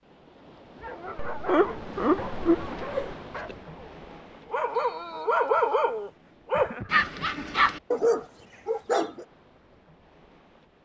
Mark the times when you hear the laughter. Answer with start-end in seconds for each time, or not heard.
1.1-3.1, 6.5-7.5.